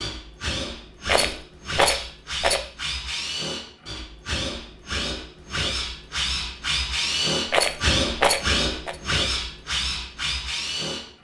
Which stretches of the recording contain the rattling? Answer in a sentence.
The rattling can be heard from 1.1 to 2.6 s and from 7.5 to 8.9 s.